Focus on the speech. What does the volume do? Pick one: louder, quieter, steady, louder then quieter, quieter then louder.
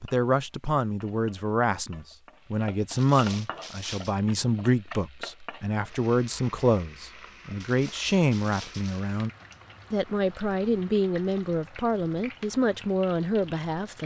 steady.